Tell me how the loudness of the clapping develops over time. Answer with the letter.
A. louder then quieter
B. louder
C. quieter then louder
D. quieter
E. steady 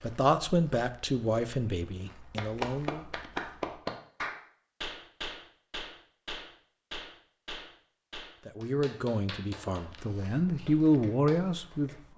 D.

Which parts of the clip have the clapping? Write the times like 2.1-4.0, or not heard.
2.4-11.9.